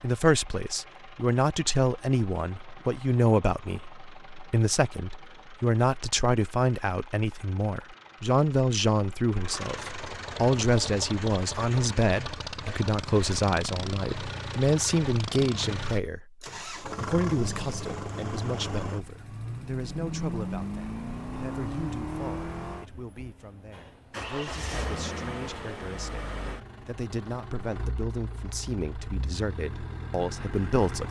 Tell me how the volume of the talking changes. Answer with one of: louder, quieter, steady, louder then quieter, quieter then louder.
quieter.